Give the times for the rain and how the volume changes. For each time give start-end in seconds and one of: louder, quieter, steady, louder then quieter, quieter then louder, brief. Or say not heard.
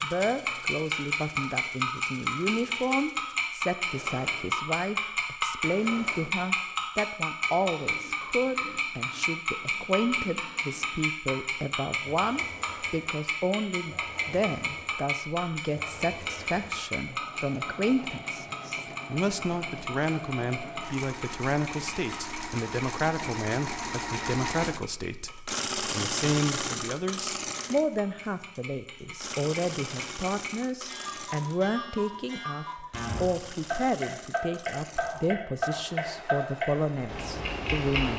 not heard.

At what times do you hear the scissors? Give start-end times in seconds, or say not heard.
not heard.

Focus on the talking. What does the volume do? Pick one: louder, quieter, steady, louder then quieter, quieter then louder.
steady.